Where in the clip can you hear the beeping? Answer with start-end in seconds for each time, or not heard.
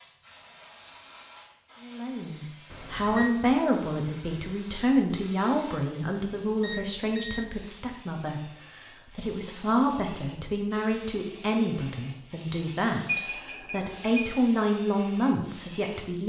2.7-3.3, 6.4-7.5, 13.1-14.3.